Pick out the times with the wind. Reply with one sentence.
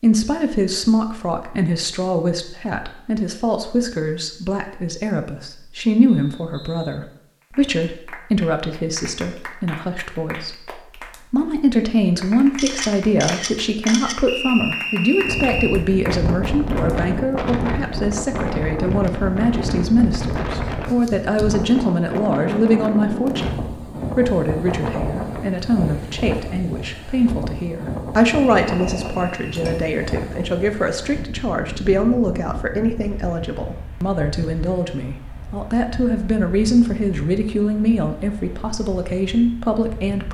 The wind can be heard from 15.2 to 40.2 s.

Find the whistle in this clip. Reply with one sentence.
You can hear the whistle from 6.0 to 7.0 s, from 14.2 to 15.8 s and from 28.6 to 29.6 s.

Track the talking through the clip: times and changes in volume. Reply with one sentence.
You can hear the talking from 0.0 to 40.2 s, at a steady volume.